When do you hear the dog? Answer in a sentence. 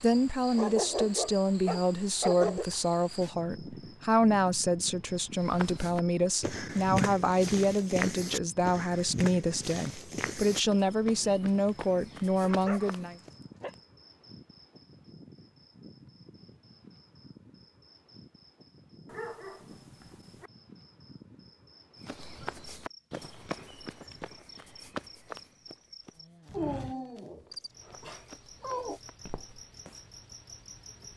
You can hear the dog from 0.5 to 2.6 s, from 12.4 to 13.8 s, from 19.1 to 20.5 s and from 26.5 to 29.0 s.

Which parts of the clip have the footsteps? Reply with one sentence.
You can hear the footsteps from 5.4 to 13.3 s and from 22.1 to 30.0 s.